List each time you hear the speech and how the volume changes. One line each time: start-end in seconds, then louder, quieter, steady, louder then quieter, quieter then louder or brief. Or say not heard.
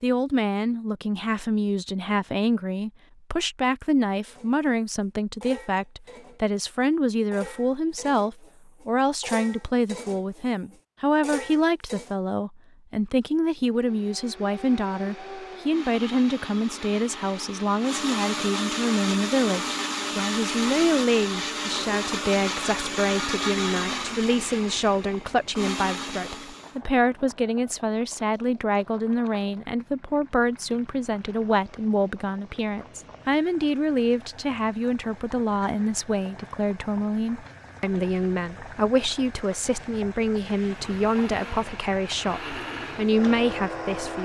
0.0-44.1 steady.